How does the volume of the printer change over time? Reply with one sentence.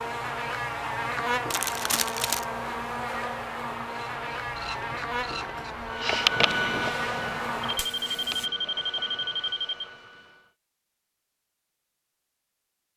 The volume of the printer goes up, then down.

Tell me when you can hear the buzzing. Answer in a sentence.
You can hear the buzzing from 0.0 to 8.5 s.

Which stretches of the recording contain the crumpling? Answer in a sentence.
The crumpling can be heard from 1.5 to 2.5 s.